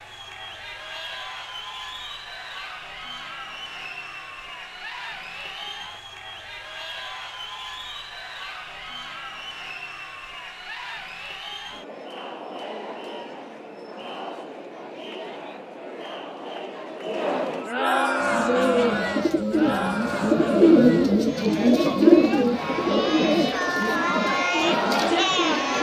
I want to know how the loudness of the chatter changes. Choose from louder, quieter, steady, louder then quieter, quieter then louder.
louder.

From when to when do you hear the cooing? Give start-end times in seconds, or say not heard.
18.2-25.7.